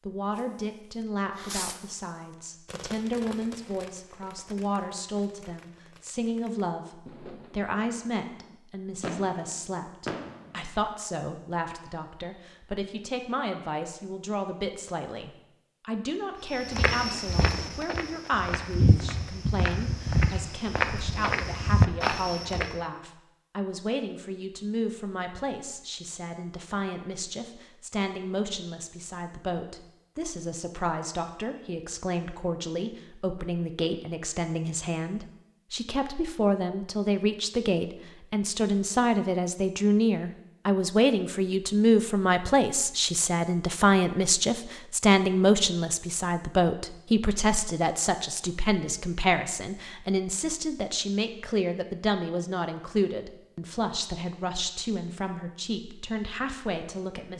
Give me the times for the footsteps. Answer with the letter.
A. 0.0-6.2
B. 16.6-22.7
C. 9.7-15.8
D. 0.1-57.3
B.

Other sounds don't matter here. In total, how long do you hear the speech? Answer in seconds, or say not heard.
57 s.